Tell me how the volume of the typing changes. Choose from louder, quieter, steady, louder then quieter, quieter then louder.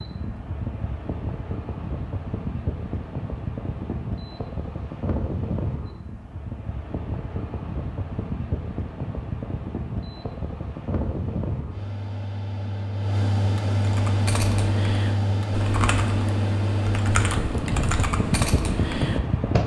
steady.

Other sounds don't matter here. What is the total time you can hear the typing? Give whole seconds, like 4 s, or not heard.
6 s.